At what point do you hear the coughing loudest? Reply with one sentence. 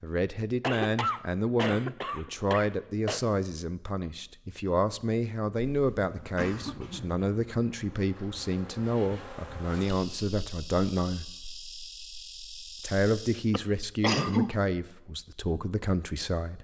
The volume of the coughing peaks at 14 seconds.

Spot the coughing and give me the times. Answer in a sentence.
The coughing can be heard from 0.6 to 3.2 s, from 5.5 to 7.2 s and from 13.5 to 14.5 s.